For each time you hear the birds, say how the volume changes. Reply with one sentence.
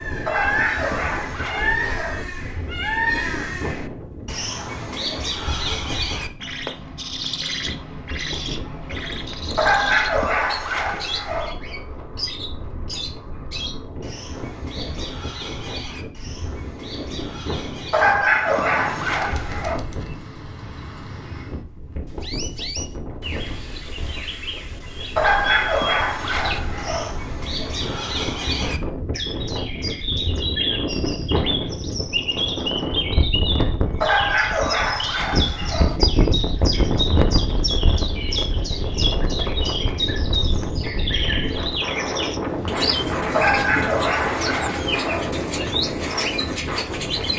The birds can be heard from 0.0 to 47.3 s, getting quieter then louder.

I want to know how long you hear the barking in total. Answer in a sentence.
You can hear the barking for 12 seconds altogether.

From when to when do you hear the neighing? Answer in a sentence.
The neighing can't be heard in this clip.